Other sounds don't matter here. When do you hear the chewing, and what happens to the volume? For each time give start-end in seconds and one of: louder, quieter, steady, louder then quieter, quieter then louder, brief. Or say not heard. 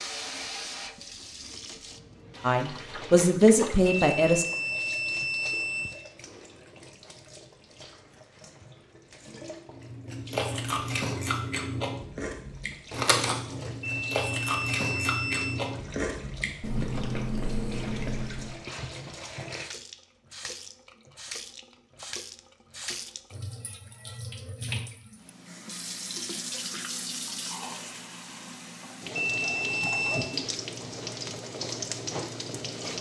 9.7-18.6 steady.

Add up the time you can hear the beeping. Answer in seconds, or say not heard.
5 s.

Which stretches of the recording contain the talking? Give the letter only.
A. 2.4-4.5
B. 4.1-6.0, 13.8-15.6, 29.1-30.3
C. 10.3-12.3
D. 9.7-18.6
A.